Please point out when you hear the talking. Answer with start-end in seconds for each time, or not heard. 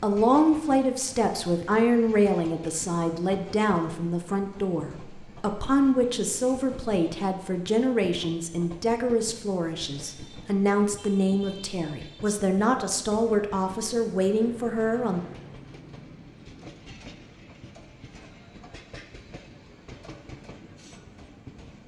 0.0-15.2.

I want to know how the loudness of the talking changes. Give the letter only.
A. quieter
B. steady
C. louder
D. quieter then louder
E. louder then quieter
B.